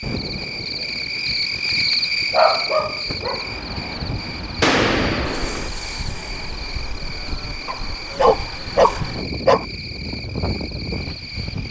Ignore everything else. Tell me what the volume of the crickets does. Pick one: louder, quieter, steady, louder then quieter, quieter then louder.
quieter.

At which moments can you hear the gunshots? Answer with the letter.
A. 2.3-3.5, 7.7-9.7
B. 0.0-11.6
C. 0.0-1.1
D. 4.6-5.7
D.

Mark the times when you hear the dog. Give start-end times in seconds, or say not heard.
2.3-3.5, 7.7-9.7.